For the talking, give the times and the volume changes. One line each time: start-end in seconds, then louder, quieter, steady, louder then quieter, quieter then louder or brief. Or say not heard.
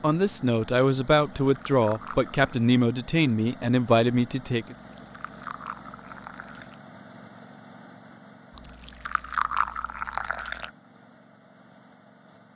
0.0-4.8 steady.